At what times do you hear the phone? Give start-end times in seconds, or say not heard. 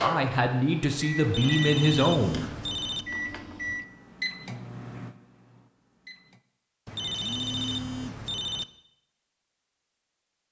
1.2-3.0, 6.8-8.7.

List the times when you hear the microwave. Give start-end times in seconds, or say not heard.
0.0-6.4.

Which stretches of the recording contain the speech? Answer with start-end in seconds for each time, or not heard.
0.0-2.5.